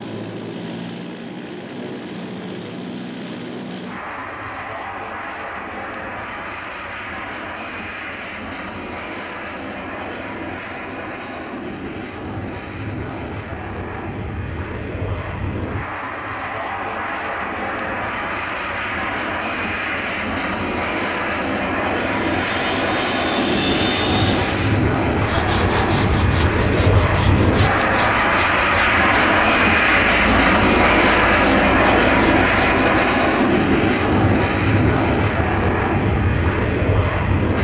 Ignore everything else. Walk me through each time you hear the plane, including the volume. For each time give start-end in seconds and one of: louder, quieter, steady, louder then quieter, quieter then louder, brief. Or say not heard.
0.0-37.5 louder.